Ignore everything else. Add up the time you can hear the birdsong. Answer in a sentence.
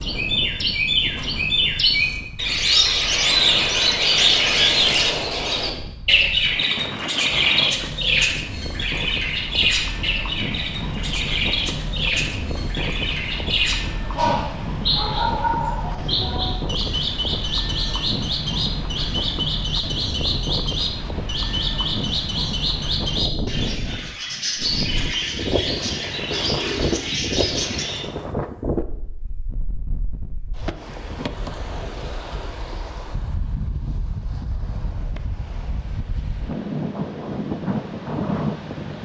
You can hear the birdsong for 28 seconds altogether.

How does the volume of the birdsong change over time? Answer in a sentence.
The loudness of the birdsong goes down.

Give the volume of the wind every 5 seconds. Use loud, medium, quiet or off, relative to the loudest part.
medium, medium, loud, loud, loud, loud, medium, loud.